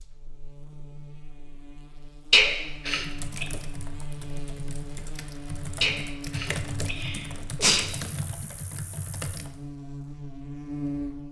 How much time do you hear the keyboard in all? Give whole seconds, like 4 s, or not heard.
7 s.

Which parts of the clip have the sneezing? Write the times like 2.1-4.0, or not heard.
2.3-3.5, 5.8-7.8.